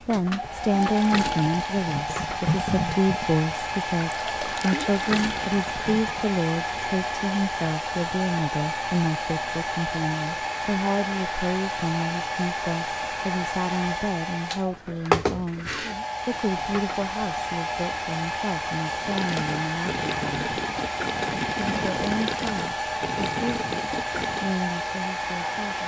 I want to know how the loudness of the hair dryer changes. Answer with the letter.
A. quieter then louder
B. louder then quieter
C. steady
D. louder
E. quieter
C.